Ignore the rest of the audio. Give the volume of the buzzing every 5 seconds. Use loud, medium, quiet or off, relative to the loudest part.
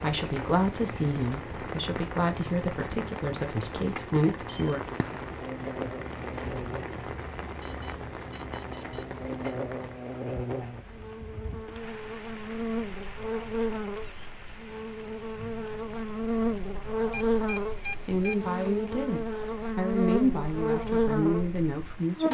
off, medium, medium, loud, loud.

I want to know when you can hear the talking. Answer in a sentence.
The talking can be heard from 0.0 to 4.8 s and from 18.0 to 22.2 s.